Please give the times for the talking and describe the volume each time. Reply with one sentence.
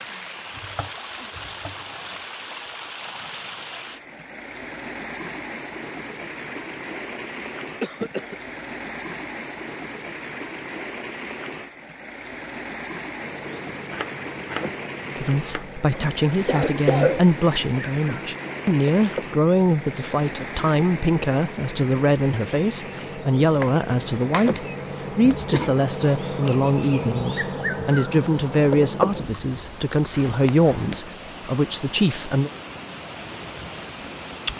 You can hear the talking from 15.2 to 32.5 s, at a steady volume.